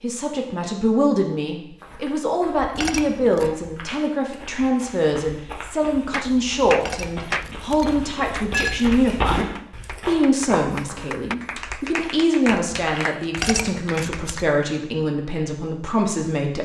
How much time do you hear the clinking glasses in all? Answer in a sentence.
The clinking glasses can be heard for 4 seconds in total.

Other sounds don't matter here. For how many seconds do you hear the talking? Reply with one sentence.
You can hear the talking for 16 seconds altogether.